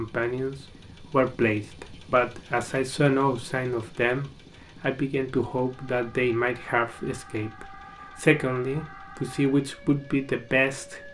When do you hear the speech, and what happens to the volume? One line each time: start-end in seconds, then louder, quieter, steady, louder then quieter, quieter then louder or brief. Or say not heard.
0.0-11.0 steady.